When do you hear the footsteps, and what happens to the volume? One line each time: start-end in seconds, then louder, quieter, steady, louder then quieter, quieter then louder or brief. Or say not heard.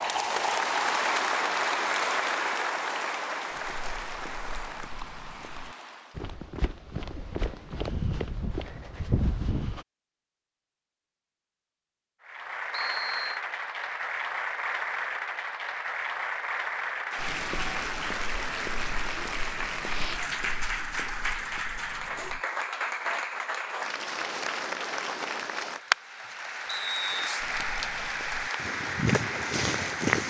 3.5-9.8 louder
17.1-22.4 quieter
27.4-30.2 brief.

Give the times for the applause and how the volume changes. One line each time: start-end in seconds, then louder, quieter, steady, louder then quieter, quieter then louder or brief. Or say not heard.
0.0-6.3 quieter
12.2-30.2 steady.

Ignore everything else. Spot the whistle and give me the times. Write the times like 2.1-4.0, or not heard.
12.7-13.4, 26.6-27.3.